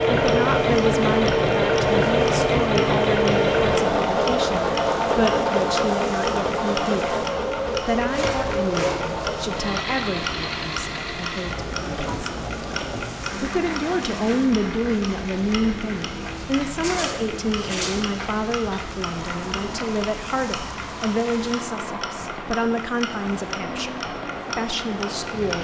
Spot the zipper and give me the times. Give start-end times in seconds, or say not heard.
8.1-9.0, 16.8-18.1.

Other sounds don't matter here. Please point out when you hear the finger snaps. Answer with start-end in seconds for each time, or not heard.
not heard.